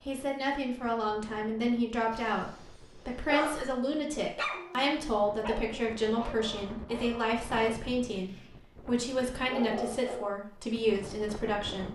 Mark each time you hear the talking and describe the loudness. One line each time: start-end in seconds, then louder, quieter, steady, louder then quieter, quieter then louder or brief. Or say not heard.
0.1-11.9 steady.